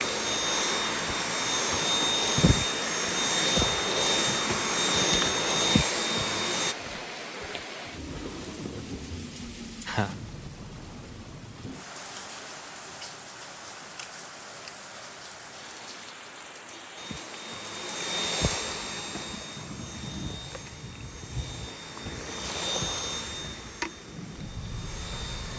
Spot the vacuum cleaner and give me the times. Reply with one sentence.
The vacuum cleaner can be heard from 0.0 to 6.8 s and from 16.9 to 25.5 s.